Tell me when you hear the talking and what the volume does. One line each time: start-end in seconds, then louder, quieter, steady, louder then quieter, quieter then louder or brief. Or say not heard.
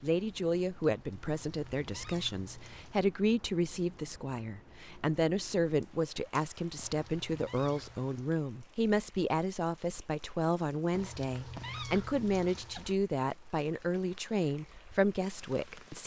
0.0-16.0 steady.